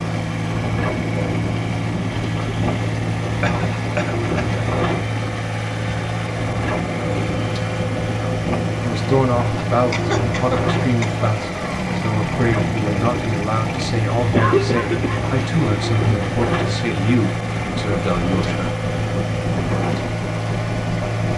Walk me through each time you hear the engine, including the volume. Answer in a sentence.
You can hear the engine from 0.0 to 21.3 s, at a steady volume.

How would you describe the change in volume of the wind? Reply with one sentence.
The loudness of the wind stays about the same.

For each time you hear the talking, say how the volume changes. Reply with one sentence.
The talking can be heard from 8.8 to 18.7 s, at a steady volume.